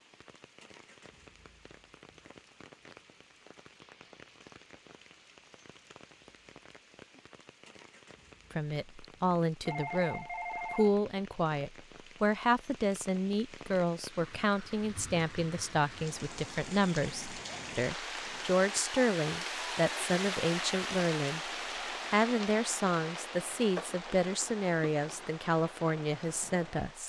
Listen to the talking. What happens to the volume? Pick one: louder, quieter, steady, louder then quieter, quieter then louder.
steady.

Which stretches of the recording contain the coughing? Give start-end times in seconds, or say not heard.
not heard.